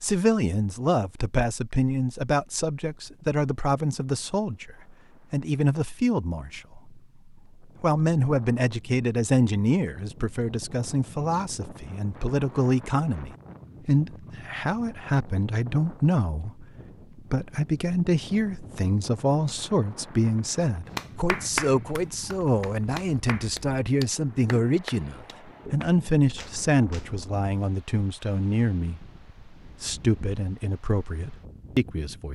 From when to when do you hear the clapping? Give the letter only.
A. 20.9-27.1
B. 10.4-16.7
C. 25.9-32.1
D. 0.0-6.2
A.